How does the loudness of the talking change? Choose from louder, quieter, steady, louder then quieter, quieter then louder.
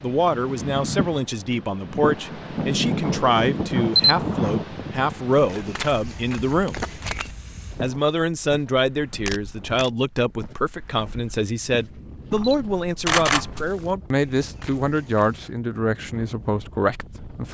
steady.